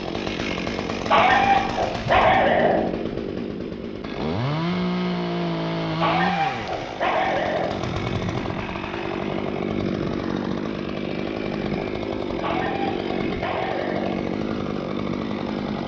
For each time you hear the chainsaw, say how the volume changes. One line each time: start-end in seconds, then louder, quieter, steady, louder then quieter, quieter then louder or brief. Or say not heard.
0.0-15.8 steady.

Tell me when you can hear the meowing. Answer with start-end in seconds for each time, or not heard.
not heard.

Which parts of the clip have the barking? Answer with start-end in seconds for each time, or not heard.
1.1-2.9, 6.0-7.8, 12.4-14.2.